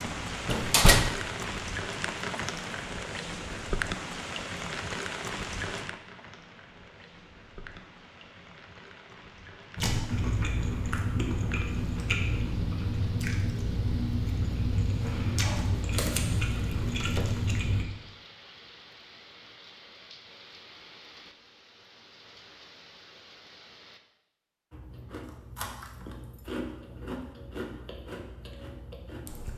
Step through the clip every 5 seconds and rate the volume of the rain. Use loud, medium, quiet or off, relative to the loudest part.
loud, medium, quiet, quiet, quiet, off.